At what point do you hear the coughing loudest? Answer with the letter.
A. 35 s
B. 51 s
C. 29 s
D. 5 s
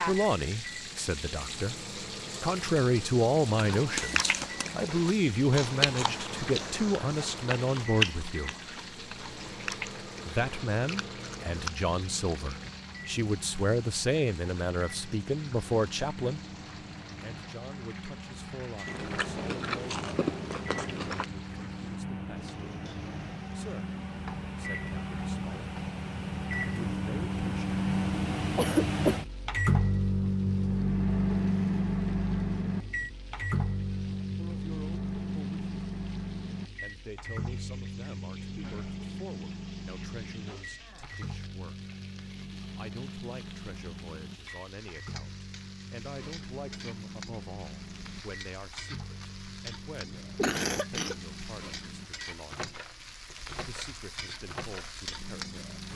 C.